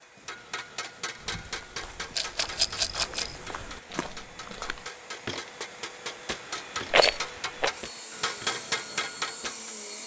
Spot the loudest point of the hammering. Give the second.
9 s.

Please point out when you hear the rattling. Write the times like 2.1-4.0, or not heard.
2.1-3.4, 6.9-7.7.